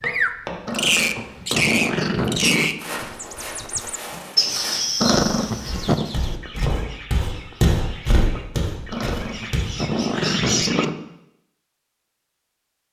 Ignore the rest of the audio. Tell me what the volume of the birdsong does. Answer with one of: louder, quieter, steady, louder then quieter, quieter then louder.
quieter then louder.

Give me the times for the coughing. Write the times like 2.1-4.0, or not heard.
not heard.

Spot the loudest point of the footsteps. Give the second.
8 s.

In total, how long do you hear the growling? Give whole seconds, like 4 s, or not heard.
5 s.